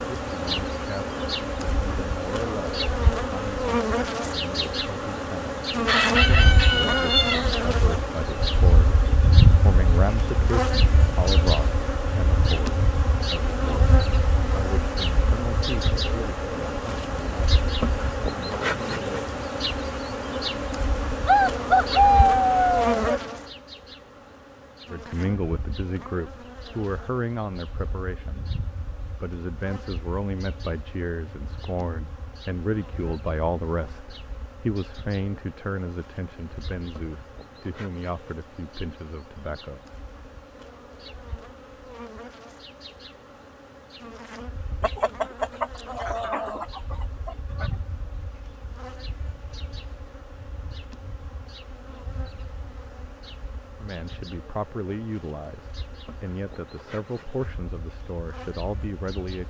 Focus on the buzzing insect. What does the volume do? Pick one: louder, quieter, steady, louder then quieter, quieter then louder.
quieter.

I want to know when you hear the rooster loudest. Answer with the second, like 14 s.
22 s.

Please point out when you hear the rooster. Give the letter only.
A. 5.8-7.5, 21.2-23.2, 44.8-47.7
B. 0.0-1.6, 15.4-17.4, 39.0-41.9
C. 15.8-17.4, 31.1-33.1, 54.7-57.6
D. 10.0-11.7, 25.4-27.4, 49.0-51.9
A.